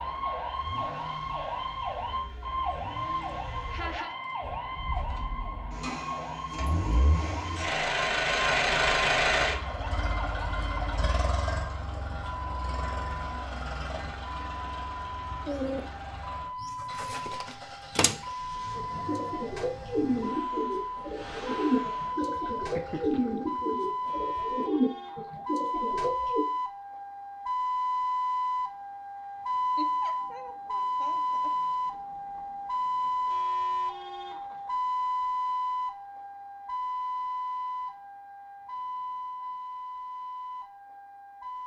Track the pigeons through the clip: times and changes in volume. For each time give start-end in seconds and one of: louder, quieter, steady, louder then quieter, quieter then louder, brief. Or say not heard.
15.4-26.4 louder.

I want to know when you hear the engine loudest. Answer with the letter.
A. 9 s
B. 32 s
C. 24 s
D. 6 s
A.